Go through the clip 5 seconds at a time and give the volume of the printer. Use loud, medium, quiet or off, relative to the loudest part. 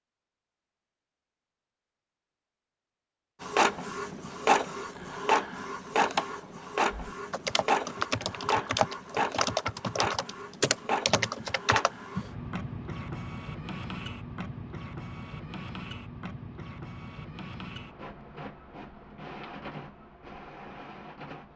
loud, loud, medium, quiet, quiet.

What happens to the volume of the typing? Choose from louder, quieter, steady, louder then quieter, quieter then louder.
steady.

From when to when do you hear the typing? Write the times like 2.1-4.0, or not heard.
7.1-12.3.